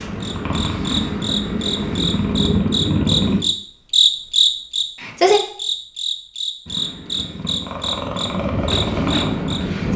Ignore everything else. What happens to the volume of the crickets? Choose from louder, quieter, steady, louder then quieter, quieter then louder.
louder then quieter.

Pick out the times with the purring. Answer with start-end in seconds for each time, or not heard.
0.0-3.4, 6.7-9.9.